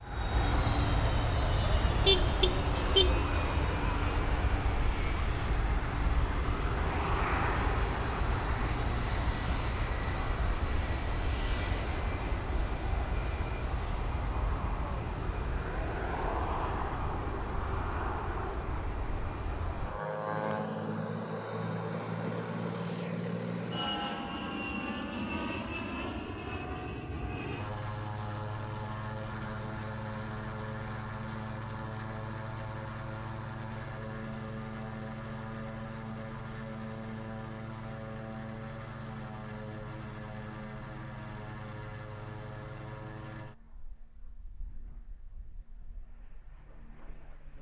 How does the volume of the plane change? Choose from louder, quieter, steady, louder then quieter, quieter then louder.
quieter.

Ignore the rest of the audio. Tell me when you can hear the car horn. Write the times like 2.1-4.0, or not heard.
2.0-3.1.